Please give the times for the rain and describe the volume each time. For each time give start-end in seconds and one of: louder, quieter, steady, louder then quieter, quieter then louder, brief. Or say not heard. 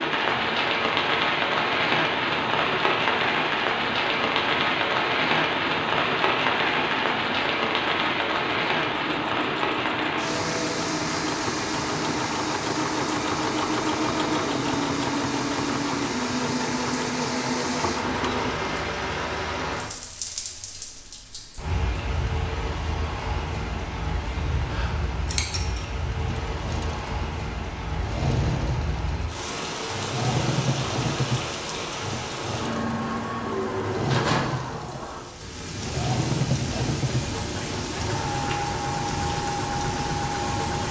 0.0-40.8 quieter.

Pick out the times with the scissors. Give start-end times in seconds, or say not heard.
24.7-25.9.